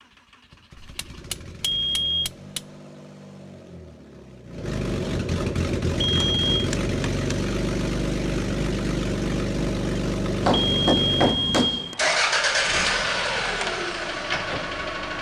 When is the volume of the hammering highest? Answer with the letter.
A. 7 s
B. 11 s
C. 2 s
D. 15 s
B.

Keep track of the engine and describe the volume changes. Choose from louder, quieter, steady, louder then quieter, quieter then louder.
louder.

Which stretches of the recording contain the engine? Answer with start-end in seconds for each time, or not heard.
0.0-15.1.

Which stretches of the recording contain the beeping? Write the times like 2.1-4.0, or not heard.
1.6-2.3, 6.0-6.7, 10.5-12.0.